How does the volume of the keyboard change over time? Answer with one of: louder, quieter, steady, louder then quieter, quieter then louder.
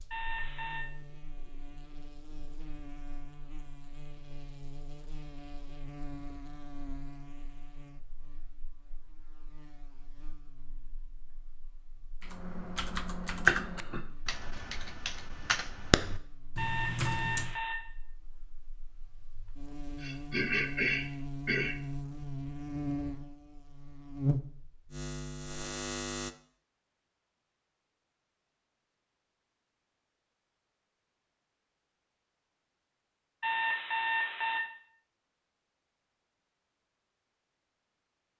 quieter then louder.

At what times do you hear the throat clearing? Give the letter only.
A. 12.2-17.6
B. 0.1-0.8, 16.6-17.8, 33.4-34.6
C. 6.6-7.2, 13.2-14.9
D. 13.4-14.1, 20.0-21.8
D.